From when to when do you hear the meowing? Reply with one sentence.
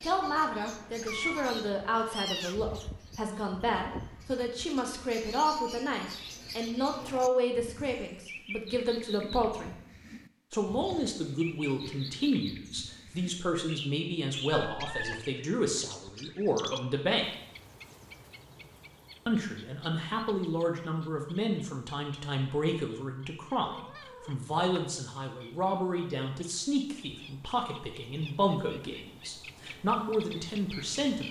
The meowing can be heard from 1.0 to 2.5 s, from 14.5 to 15.2 s and from 23.6 to 24.8 s.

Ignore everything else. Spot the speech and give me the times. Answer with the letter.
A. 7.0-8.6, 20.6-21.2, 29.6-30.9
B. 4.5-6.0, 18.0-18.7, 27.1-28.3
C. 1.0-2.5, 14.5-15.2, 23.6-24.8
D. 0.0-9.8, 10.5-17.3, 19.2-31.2
D.